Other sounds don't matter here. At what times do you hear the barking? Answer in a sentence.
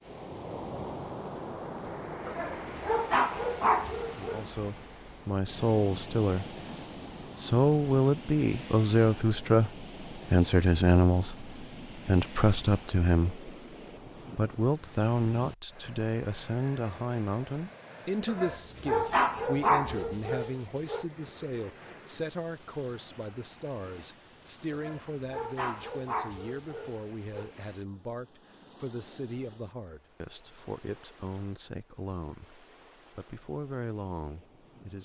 The barking can be heard from 2.2 to 4.5 s, from 18.2 to 21.1 s and from 24.7 to 27.4 s.